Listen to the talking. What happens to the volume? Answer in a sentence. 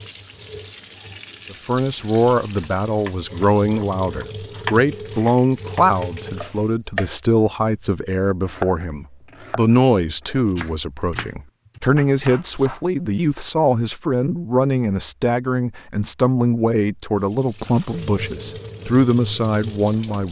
The volume of the talking stays about the same.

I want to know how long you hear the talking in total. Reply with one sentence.
You can hear the talking for 19 seconds altogether.